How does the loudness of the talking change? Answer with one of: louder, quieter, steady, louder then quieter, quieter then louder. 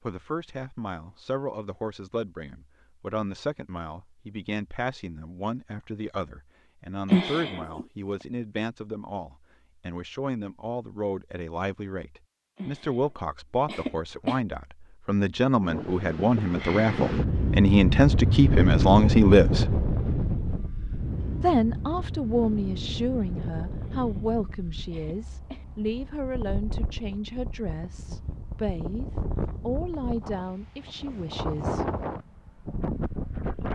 louder then quieter.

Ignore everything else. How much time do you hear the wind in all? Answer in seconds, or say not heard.
18 s.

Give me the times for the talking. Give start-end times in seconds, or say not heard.
0.0-19.8, 21.4-31.9.